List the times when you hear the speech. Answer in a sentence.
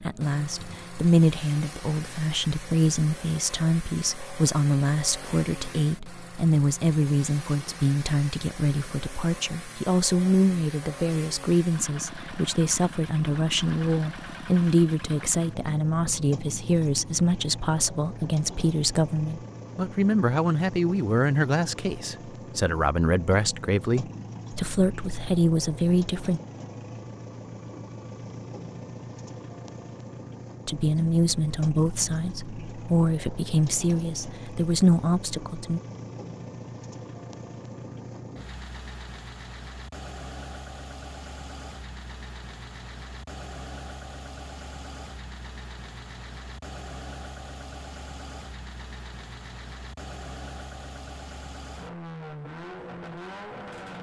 The speech can be heard from 0.0 to 26.4 s and from 30.6 to 35.8 s.